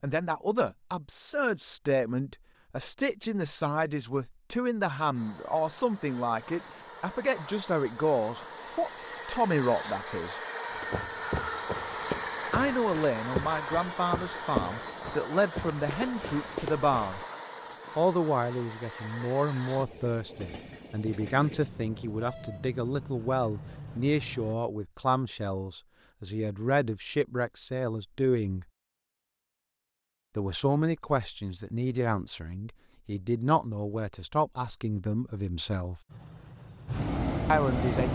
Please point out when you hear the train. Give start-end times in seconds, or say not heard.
5.1-24.6, 36.0-38.1.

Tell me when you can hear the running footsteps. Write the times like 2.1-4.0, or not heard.
10.7-17.2.